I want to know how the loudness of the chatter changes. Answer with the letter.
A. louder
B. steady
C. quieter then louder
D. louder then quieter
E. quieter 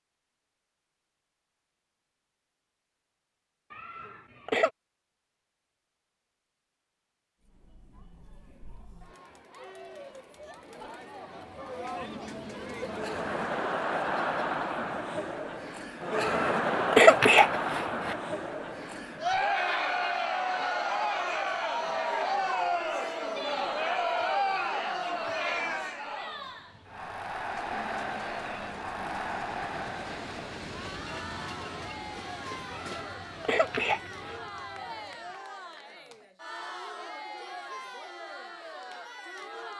D.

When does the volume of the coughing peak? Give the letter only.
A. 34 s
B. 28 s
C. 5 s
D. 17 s
D.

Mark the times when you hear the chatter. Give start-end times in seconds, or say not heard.
7.4-39.7.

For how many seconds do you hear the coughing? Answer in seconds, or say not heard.
5 s.